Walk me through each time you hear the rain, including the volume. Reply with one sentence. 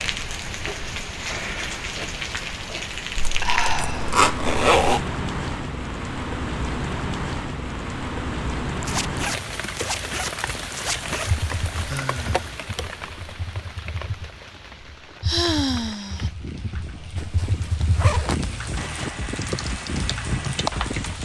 You can hear the rain from 0.0 to 21.2 s, getting quieter then louder.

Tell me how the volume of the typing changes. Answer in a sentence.
The volume of the typing goes up.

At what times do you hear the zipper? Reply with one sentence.
The zipper can be heard from 3.1 to 5.0 s, from 8.8 to 11.3 s and from 17.1 to 19.1 s.